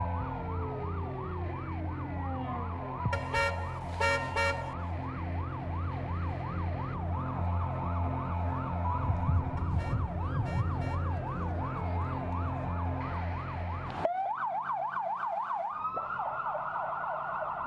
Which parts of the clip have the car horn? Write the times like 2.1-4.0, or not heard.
3.1-4.8, 9.6-11.2.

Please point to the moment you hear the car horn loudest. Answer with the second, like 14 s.
4 s.